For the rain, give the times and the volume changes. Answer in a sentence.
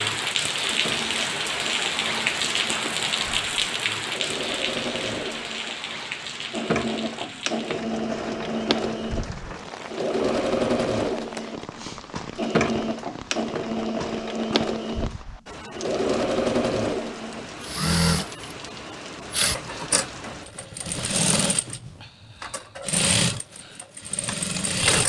The rain can be heard from 0.0 to 20.5 s, getting quieter.